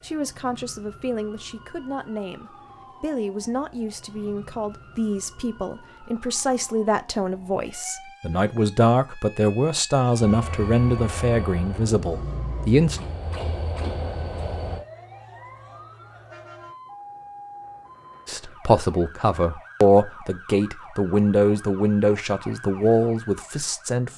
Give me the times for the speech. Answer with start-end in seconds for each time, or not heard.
0.0-13.0, 18.2-24.1.